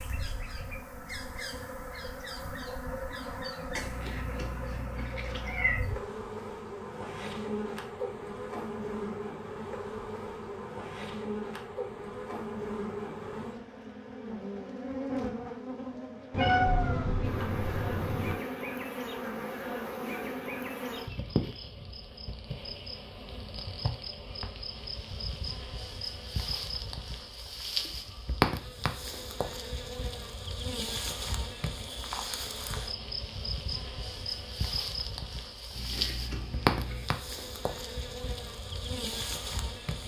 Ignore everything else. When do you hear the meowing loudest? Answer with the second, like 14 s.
17 s.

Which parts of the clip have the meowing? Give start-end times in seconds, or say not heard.
3.8-5.8, 16.3-18.4, 35.7-37.1.